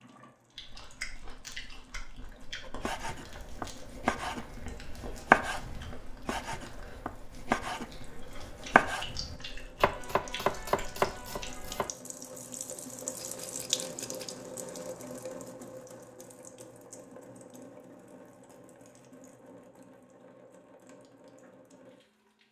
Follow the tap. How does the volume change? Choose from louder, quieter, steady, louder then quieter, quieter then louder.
louder then quieter.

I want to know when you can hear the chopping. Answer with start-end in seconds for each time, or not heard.
2.6-11.9.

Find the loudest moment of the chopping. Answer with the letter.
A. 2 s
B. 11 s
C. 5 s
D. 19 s
C.